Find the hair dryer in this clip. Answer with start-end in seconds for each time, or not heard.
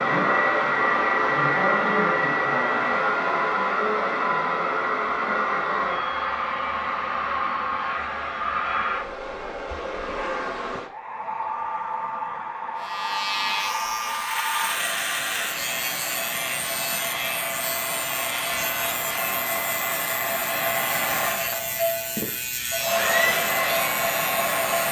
0.0-24.8.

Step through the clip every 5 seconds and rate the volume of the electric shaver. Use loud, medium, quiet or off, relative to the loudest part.
off, off, loud, loud, loud.